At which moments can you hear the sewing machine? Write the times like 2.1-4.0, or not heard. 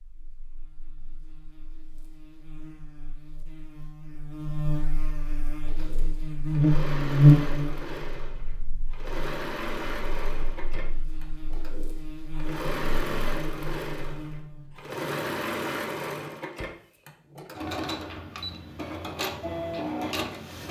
5.6-20.6.